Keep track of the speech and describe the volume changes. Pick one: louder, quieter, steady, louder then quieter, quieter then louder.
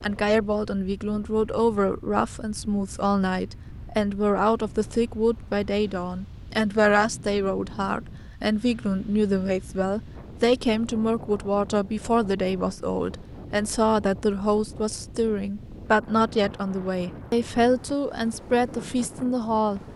steady.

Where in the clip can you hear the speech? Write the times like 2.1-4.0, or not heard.
0.0-19.8.